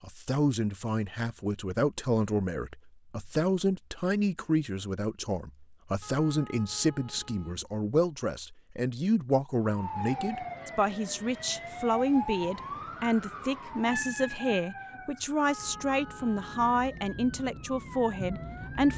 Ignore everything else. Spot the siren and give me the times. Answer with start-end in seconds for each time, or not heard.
9.6-18.9.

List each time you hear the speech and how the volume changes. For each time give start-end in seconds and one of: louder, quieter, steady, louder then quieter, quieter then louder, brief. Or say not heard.
0.0-18.9 steady.